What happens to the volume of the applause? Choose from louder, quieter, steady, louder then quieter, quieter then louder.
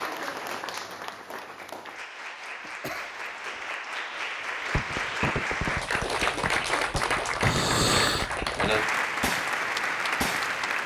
louder.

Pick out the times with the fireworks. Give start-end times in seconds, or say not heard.
4.7-10.6.